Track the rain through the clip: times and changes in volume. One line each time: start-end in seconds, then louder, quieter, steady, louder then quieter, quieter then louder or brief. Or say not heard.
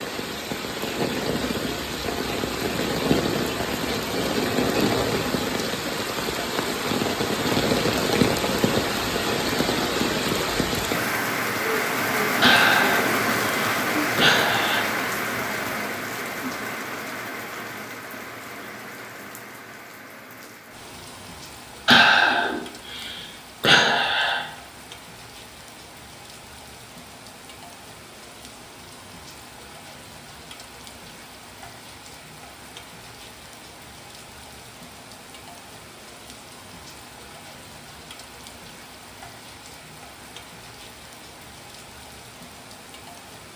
0.0-43.5 quieter.